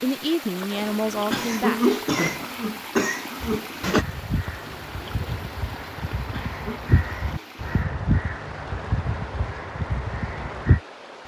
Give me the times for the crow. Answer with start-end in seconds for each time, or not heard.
3.4-10.8.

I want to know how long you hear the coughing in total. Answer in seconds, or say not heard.
3 s.